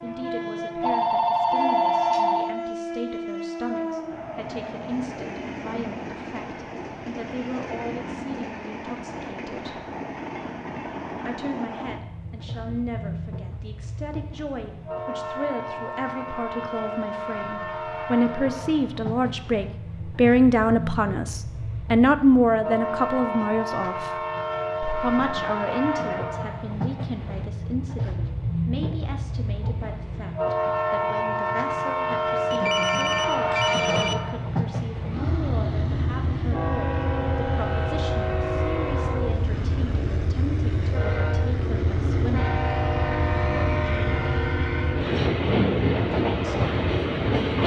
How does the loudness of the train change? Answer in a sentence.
The volume of the train goes up.